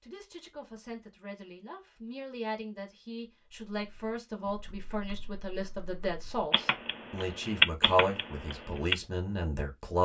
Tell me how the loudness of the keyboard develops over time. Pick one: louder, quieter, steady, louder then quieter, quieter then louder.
louder then quieter.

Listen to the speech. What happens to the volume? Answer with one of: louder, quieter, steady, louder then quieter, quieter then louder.
louder.